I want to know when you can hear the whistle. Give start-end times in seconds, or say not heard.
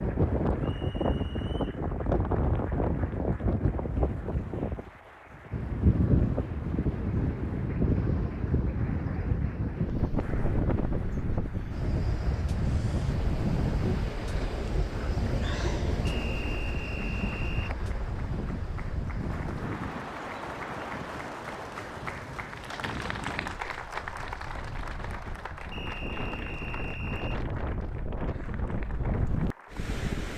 0.6-1.9, 16.1-17.8, 25.7-27.4.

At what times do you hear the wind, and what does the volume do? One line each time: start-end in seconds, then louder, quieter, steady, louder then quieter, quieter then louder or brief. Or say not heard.
0.0-30.3 quieter.